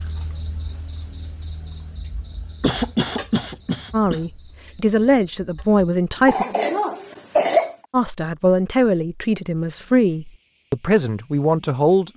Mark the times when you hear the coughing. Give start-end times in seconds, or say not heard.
2.6-4.2, 6.2-7.8.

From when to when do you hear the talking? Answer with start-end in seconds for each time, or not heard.
3.9-6.5, 7.9-12.1.